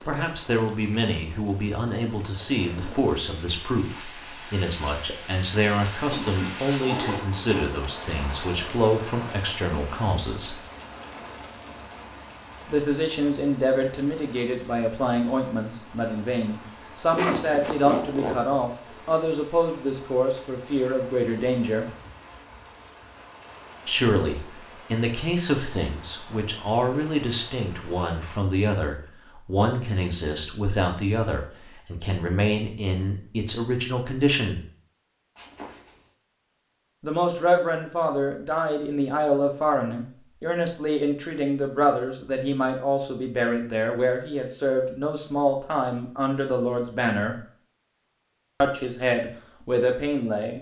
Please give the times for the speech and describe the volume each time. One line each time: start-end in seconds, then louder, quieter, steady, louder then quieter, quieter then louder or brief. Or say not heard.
0.0-10.6 steady
12.7-21.9 steady
23.9-34.6 steady
37.0-47.4 steady
48.6-50.5 brief.